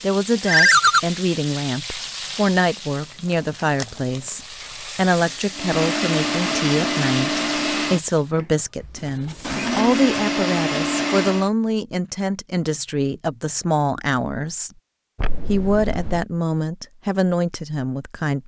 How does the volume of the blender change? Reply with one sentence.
The volume of the blender goes down, then up.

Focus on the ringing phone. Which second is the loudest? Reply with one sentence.
The loudest moment of the ringing phone is at 1 second.